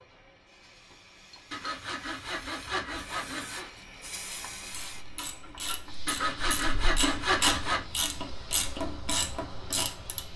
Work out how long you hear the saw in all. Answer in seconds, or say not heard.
4 s.